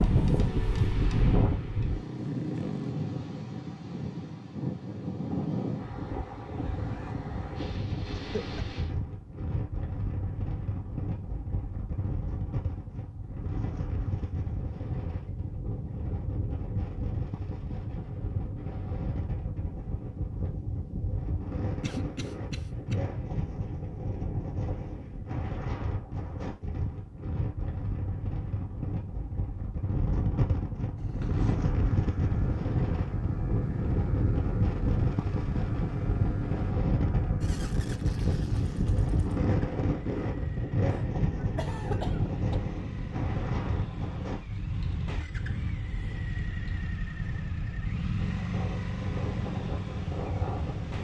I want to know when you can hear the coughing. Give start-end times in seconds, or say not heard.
8.2-8.7, 21.8-22.9, 40.9-42.6.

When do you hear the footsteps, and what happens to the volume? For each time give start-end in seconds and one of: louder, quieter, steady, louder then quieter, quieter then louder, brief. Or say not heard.
not heard.